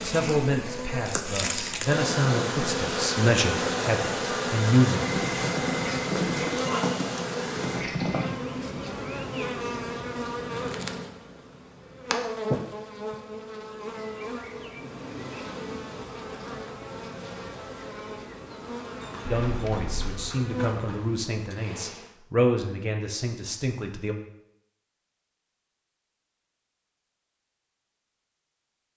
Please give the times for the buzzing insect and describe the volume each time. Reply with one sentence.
You can hear the buzzing insect from 0.0 to 22.1 s, getting quieter.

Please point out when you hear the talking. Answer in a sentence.
You can hear the talking from 0.0 to 5.0 s and from 19.2 to 24.1 s.